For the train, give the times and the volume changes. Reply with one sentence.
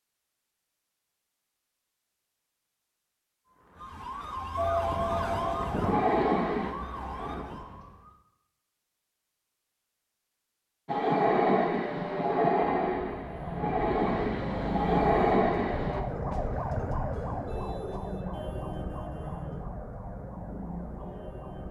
The train can be heard briefly from 4.5 to 7.4 s; and from 10.8 to 16.1 s, getting quieter then louder.